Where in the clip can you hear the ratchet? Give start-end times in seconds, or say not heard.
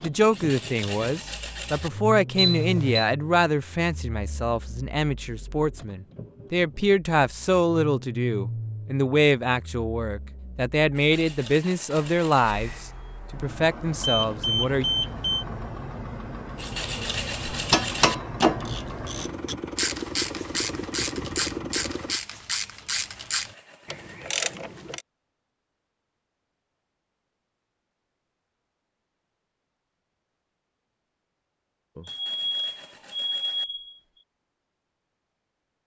17.5-25.1.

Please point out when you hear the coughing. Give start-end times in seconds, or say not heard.
not heard.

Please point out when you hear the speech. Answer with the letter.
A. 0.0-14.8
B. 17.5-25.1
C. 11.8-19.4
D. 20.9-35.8
A.